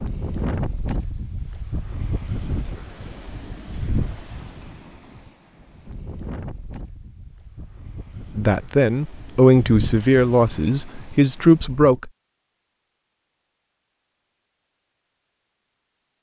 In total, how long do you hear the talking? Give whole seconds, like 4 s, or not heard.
4 s.